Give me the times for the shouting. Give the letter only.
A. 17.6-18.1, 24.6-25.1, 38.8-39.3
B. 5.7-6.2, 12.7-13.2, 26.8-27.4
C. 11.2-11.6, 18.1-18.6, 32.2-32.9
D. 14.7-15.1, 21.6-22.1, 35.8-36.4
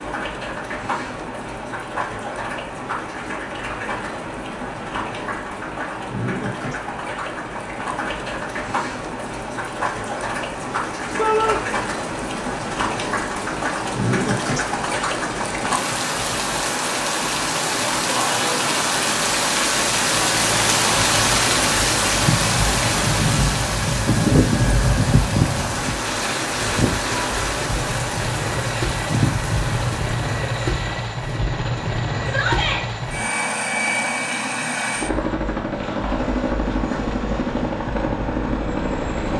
C.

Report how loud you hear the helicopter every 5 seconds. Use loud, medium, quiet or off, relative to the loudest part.
off, off, off, off, medium, loud, loud, loud.